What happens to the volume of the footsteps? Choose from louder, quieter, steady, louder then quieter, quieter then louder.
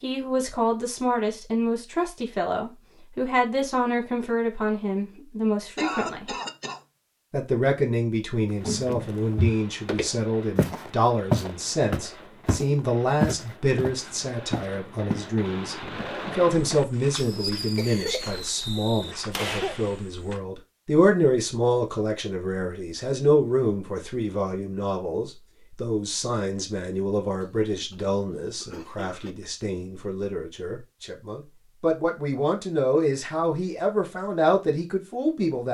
quieter.